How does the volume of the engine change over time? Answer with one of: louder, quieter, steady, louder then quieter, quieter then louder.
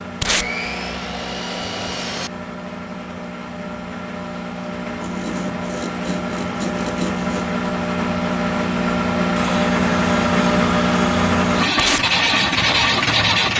louder.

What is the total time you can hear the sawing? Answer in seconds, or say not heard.
7 s.